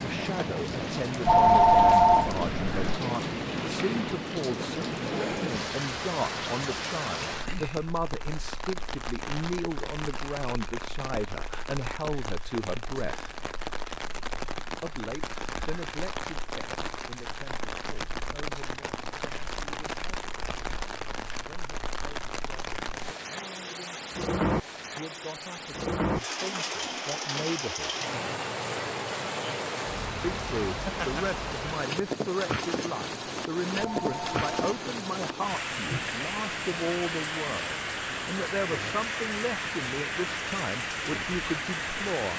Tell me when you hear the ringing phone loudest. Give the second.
2 s.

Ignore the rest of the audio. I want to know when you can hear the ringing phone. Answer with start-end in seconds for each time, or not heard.
1.2-3.0, 33.8-34.6.